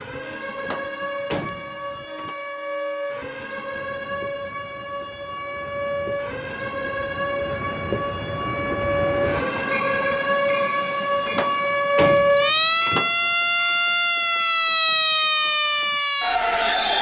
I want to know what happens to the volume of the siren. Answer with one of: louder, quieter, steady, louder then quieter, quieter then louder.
louder.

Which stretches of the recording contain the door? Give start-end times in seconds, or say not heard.
0.6-2.4, 11.2-13.2.